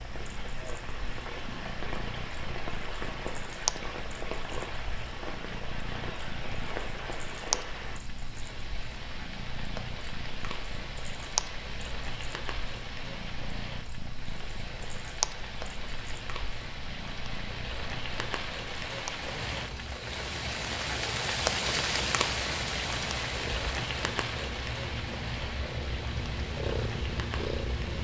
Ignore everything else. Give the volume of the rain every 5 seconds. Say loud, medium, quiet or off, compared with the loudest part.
medium, medium, medium, medium, loud, medium.